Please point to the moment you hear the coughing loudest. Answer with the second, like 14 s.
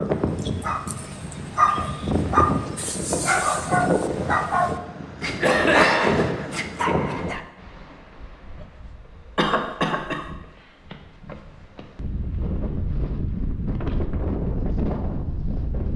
6 s.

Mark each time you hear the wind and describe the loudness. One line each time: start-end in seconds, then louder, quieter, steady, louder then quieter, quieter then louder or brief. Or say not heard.
0.0-15.9 quieter then louder.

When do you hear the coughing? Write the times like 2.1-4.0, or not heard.
5.4-6.5, 9.3-10.2.